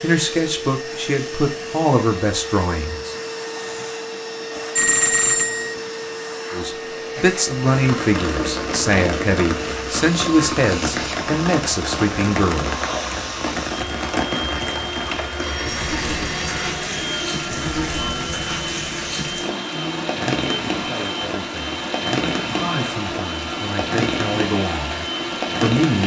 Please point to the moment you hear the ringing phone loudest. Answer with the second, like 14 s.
5 s.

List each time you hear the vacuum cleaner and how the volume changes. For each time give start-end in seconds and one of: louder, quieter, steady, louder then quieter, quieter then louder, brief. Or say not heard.
0.0-26.0 steady.